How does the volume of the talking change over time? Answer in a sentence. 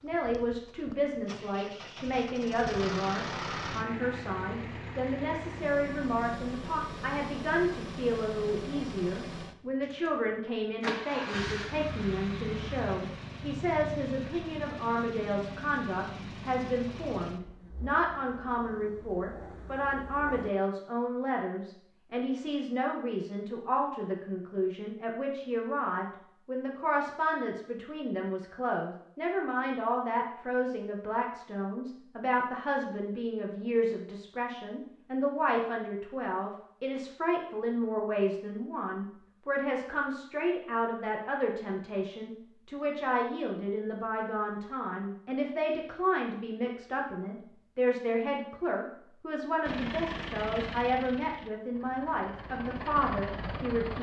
The volume of the talking stays about the same.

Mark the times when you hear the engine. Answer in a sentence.
You can hear the engine from 0.0 to 20.5 s and from 49.6 to 53.9 s.